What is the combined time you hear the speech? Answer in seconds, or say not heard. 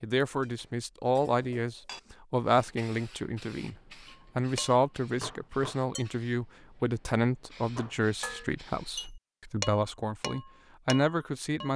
11 s.